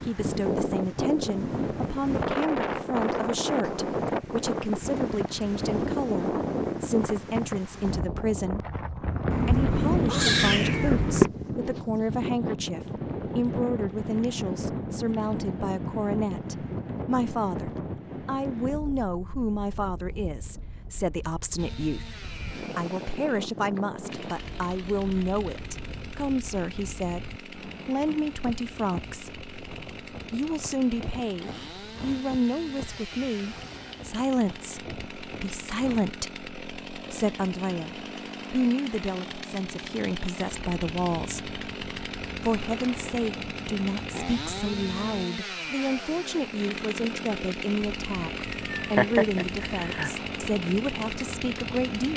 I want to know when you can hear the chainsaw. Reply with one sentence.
You can hear the chainsaw from 21.6 to 52.1 s.